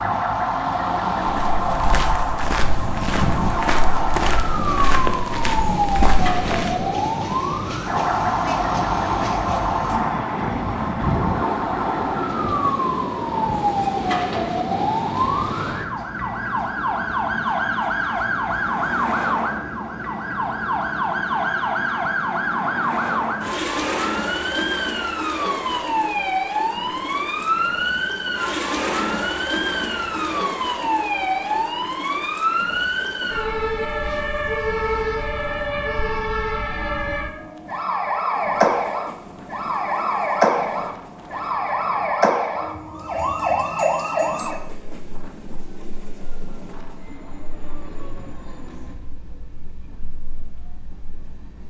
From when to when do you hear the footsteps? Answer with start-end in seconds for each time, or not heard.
1.2-6.8.